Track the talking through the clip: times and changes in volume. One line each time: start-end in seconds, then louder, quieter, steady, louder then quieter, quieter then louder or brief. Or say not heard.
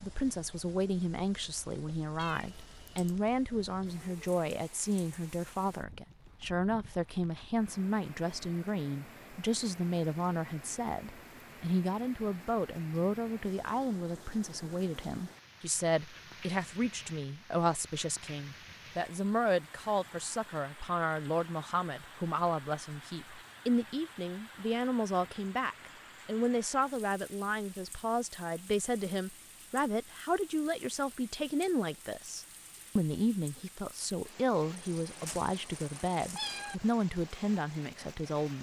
0.0-38.5 steady.